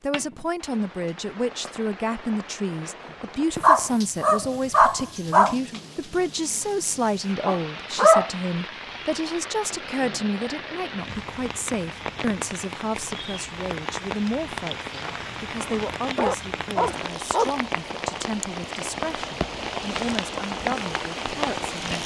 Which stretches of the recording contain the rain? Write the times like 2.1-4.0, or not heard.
0.1-22.0.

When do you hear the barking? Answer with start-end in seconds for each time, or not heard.
3.5-5.5, 7.5-8.3, 15.0-17.6.